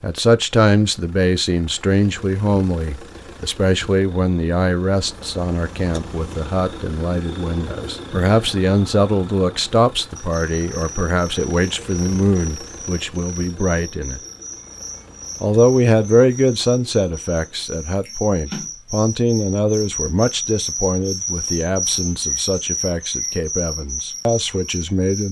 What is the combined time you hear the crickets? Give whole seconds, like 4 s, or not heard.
15 s.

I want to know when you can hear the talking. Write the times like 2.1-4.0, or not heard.
0.0-14.2, 15.4-25.2.